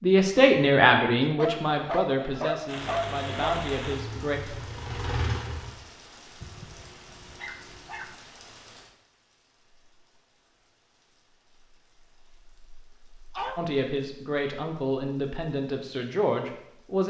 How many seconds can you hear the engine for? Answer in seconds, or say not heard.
3 s.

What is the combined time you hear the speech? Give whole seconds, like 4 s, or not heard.
8 s.